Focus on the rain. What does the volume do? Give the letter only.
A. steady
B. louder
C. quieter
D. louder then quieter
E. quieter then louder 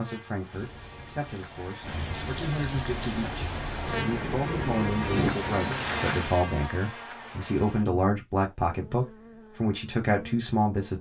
B.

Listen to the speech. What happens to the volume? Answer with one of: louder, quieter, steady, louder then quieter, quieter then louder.
louder.